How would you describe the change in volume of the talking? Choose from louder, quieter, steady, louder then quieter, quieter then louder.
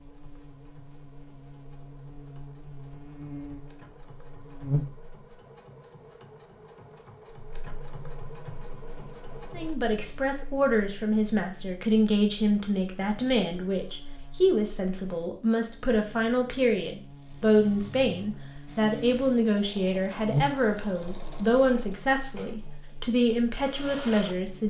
steady.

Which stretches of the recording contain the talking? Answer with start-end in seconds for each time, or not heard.
9.6-24.6.